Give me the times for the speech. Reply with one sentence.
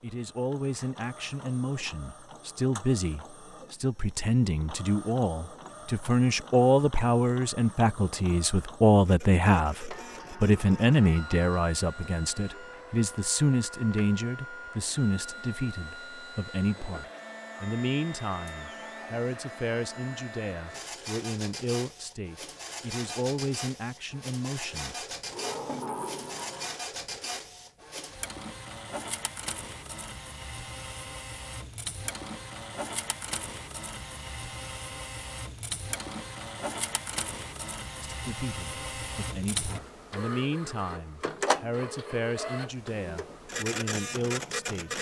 The speech can be heard from 0.0 to 25.1 s and from 38.0 to 44.9 s.